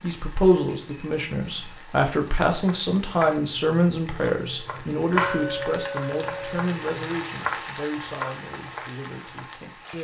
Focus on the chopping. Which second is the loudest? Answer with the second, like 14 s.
5 s.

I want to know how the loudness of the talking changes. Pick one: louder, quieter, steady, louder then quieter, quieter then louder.
quieter.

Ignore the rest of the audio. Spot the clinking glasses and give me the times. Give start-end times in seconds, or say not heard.
0.7-1.8, 5.2-6.6.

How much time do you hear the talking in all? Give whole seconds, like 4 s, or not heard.
10 s.